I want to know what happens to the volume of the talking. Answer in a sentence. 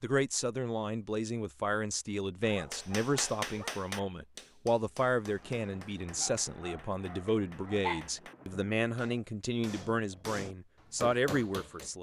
The loudness of the talking stays about the same.